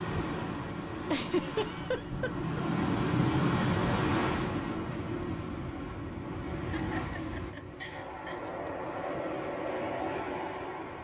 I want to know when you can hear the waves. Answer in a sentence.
You can hear the waves from 0.0 to 10.9 s.